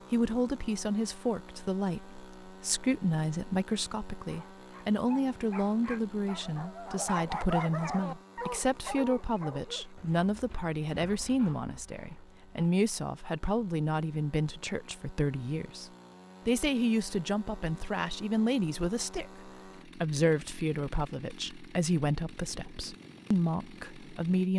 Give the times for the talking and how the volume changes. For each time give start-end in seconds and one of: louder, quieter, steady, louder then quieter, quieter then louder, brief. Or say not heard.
0.1-24.5 steady.